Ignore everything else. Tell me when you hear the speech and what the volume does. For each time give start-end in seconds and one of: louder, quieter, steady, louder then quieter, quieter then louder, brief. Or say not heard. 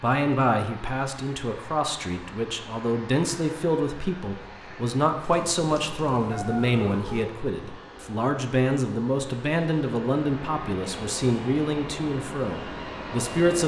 0.0-13.6 steady.